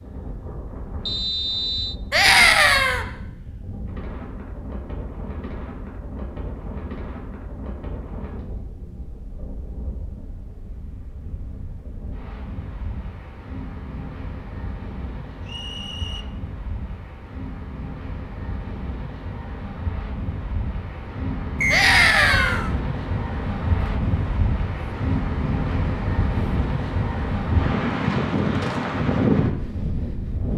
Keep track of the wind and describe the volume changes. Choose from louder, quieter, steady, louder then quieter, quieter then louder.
louder.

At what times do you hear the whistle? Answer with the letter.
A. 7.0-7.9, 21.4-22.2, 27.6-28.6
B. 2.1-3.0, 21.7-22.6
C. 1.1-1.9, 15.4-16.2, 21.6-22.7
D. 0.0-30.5
C.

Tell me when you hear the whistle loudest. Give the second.
22 s.